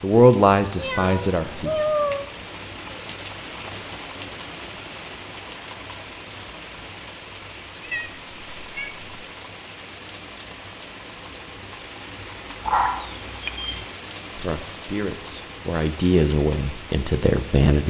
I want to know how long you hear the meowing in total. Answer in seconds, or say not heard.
4 s.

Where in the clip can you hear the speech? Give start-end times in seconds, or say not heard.
0.0-1.8, 14.3-17.8.